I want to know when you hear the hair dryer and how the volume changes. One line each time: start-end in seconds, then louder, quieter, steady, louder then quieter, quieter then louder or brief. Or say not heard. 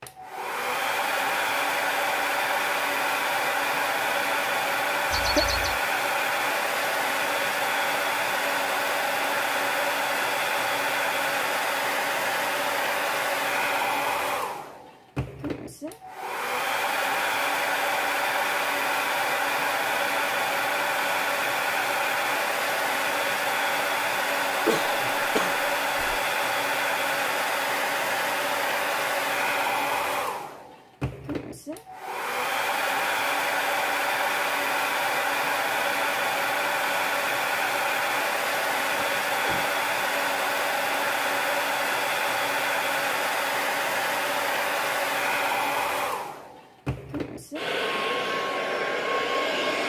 0.0-49.8 steady.